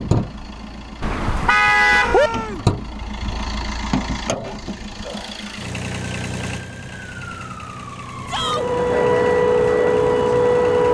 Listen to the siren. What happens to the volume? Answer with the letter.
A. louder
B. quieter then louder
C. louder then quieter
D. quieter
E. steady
A.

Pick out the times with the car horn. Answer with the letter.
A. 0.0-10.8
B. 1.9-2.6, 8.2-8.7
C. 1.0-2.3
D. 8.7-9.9
C.